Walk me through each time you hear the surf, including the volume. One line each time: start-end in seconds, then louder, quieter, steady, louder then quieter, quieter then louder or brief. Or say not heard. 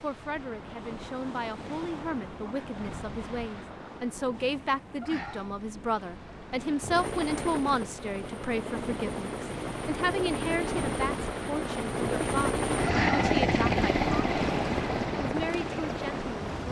0.0-16.6 louder.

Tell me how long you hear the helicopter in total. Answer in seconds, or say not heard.
10 s.